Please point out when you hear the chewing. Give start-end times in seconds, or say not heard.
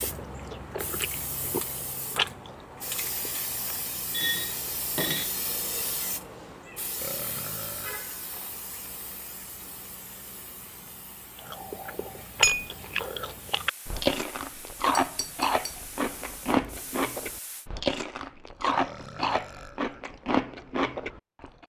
0.0-3.8, 11.3-21.6.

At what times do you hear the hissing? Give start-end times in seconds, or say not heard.
0.0-17.7.